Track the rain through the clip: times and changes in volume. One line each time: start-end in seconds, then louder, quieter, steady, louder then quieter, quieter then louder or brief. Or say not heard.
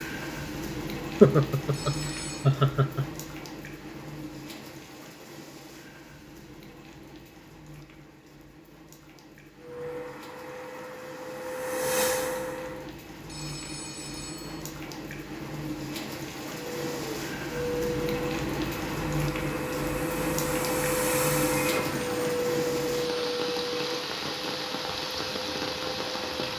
0.0-26.5 quieter then louder.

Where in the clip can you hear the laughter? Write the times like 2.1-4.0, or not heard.
1.2-3.0.